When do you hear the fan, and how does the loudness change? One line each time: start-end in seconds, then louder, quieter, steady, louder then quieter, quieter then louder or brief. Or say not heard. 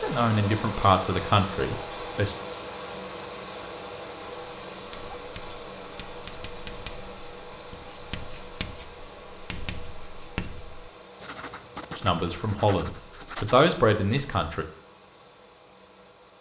0.0-16.3 quieter.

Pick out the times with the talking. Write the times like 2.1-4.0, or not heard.
0.0-2.4, 11.9-14.7.